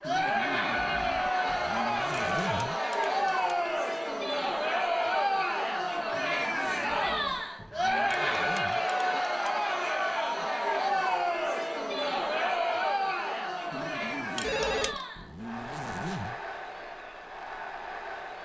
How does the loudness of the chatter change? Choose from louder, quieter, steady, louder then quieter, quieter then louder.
quieter.